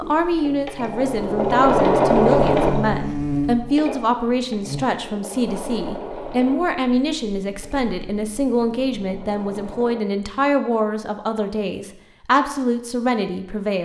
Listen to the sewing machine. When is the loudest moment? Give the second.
2 s.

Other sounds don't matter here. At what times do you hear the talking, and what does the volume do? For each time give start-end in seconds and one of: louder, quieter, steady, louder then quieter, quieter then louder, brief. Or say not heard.
0.0-13.8 steady.